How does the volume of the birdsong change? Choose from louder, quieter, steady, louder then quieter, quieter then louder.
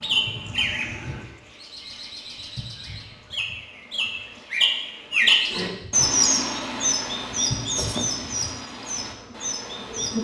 louder then quieter.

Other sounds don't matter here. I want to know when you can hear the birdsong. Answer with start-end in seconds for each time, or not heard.
0.0-10.1.